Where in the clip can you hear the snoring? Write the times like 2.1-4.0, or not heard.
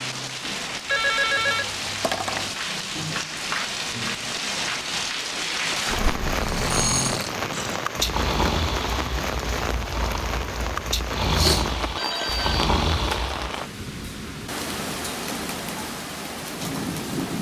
6.4-13.6.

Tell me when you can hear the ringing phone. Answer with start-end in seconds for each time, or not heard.
0.8-2.5, 5.9-7.2, 11.9-12.7.